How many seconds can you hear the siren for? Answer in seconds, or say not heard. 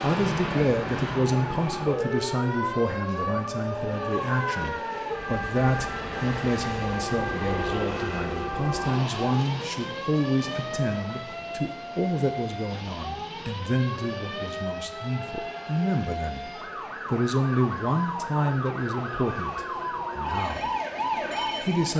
22 s.